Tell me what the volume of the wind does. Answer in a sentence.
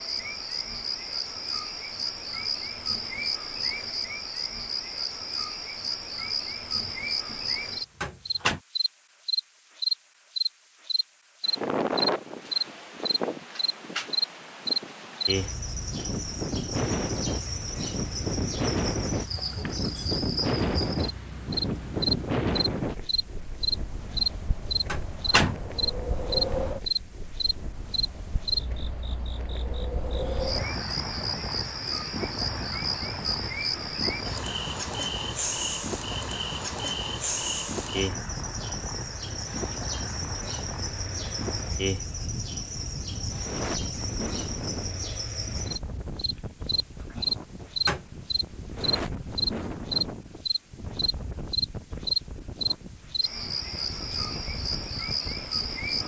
The loudness of the wind goes down.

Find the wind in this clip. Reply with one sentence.
The wind can be heard from 11.4 to 56.0 s.